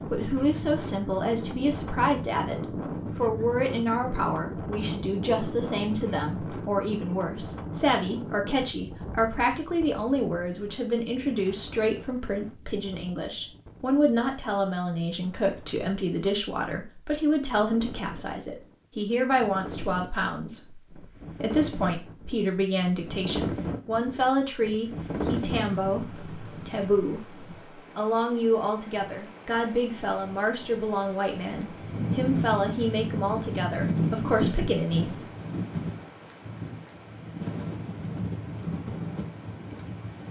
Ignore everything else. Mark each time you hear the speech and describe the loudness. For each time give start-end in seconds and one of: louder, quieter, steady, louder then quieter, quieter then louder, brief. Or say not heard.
0.1-35.1 steady.